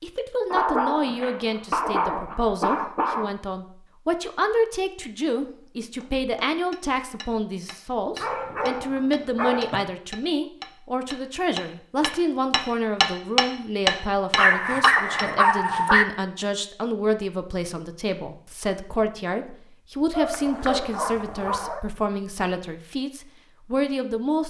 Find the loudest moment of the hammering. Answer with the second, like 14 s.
14 s.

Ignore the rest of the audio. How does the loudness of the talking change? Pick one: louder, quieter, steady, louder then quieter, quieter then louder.
steady.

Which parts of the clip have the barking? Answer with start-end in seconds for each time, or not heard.
0.5-3.3, 8.2-9.8, 14.3-16.1, 20.1-21.8.